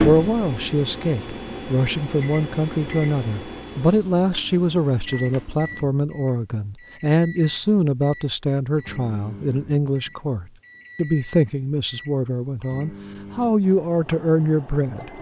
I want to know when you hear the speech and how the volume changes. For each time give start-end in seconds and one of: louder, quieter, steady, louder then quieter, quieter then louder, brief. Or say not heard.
0.0-15.1 steady.